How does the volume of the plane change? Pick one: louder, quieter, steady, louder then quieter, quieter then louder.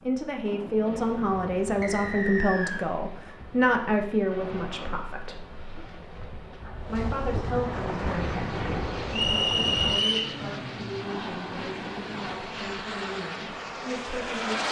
louder.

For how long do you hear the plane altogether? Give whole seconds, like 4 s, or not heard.
7 s.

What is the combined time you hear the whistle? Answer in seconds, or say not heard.
2 s.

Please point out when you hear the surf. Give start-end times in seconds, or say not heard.
0.0-12.3.